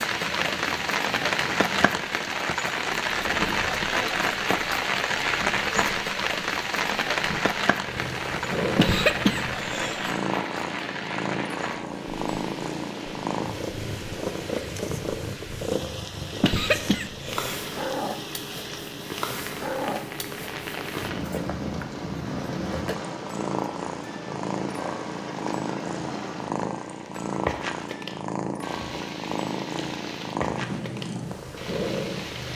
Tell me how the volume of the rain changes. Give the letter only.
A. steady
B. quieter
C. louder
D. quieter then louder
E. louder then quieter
B.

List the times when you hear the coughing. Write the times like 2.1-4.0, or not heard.
8.8-10.2, 16.4-17.6.